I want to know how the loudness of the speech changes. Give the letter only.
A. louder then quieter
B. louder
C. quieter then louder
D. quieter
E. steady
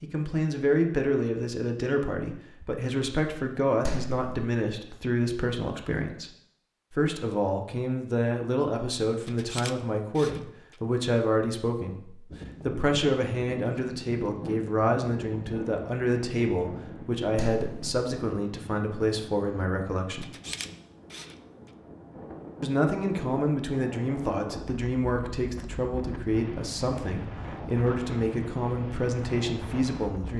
E.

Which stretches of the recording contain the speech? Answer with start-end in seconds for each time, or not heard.
0.0-6.3, 6.9-20.3, 22.6-30.3.